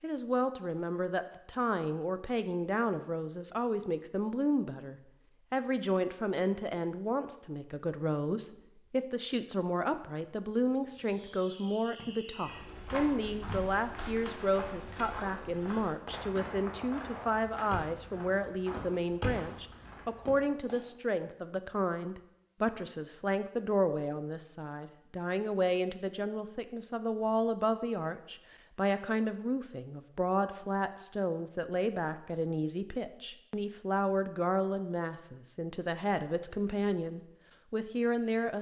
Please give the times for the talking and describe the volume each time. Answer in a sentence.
The talking can be heard from 0.0 to 38.5 s, at a steady volume.